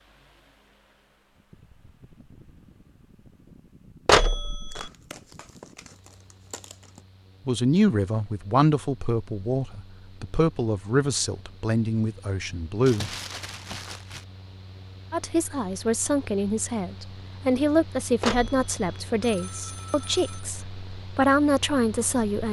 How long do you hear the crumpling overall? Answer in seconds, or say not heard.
4 s.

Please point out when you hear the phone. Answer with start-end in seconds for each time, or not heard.
4.0-4.9, 18.2-20.4.